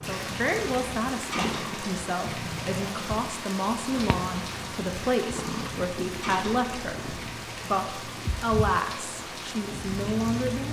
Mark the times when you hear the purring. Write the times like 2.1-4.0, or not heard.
0.0-10.6.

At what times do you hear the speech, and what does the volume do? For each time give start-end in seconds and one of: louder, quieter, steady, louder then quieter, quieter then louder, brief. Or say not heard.
0.1-10.6 steady.